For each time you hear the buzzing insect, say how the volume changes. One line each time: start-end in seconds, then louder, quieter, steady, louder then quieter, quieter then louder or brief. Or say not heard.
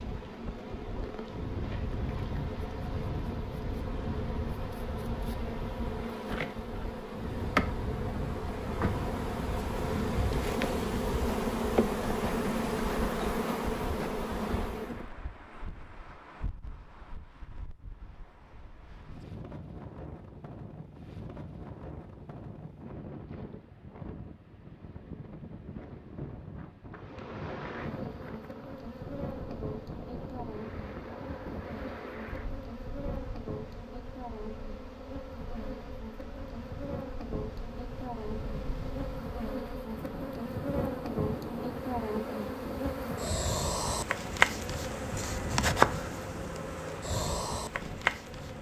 0.0-15.1 louder
26.9-48.5 louder.